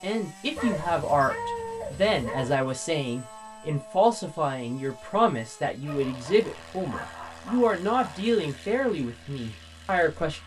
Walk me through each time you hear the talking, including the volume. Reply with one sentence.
The talking can be heard from 0.0 to 10.4 s, at a steady volume.